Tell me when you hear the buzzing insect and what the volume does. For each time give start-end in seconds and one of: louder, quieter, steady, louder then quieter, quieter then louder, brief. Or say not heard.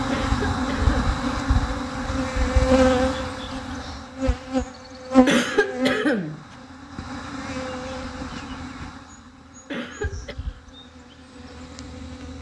0.0-12.3 quieter.